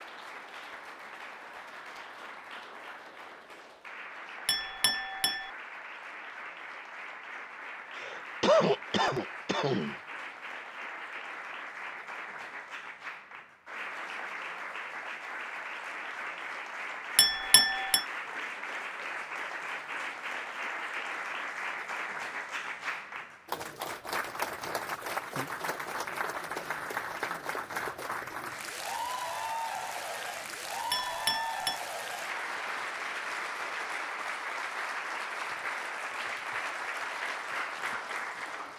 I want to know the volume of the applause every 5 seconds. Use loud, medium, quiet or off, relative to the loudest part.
medium, medium, medium, loud, loud, loud, loud, loud.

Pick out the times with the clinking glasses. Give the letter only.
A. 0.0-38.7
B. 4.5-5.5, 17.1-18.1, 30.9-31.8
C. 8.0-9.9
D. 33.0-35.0
B.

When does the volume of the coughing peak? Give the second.
9 s.